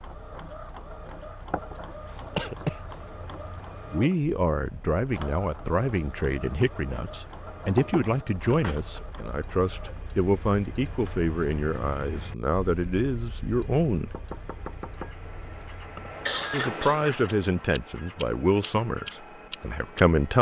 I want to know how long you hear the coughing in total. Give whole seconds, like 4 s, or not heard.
3 s.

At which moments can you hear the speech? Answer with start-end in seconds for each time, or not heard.
3.9-14.2, 16.5-20.3.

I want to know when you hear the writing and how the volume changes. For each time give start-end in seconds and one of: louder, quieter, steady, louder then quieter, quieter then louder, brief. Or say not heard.
not heard.